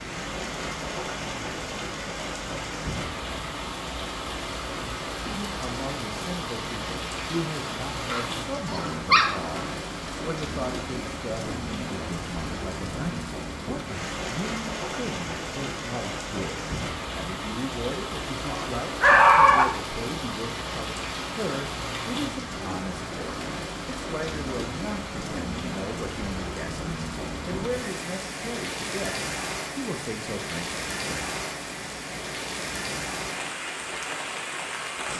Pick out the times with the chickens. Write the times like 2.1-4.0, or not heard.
not heard.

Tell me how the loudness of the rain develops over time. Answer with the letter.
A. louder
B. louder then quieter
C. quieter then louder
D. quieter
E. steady
E.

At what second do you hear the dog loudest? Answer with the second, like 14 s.
19 s.